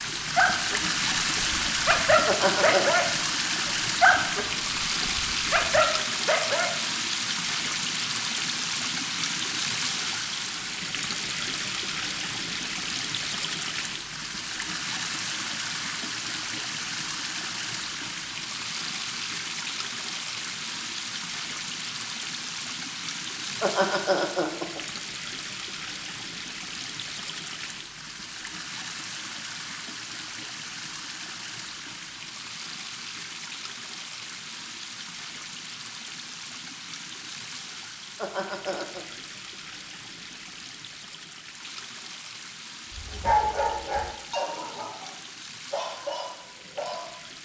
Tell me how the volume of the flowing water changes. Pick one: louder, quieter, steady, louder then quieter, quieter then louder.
quieter.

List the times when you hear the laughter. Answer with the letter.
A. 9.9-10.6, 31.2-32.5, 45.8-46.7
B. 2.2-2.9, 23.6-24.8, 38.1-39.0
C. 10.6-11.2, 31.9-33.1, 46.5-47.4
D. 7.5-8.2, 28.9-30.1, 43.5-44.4
B.